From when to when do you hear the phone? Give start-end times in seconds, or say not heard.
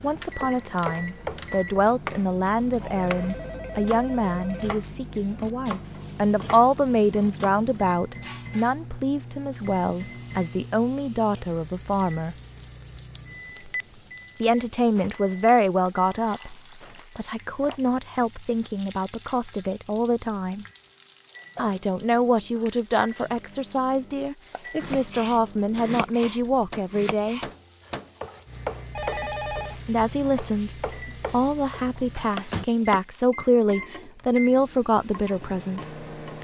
2.7-4.8, 13.5-14.1, 28.9-29.8.